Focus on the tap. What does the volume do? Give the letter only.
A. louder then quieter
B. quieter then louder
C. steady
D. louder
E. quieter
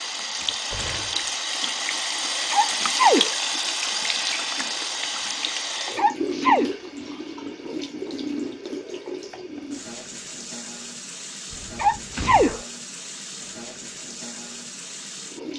E.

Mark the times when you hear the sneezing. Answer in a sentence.
You can hear the sneezing from 2.5 to 3.3 s, from 6.0 to 6.7 s and from 11.8 to 12.6 s.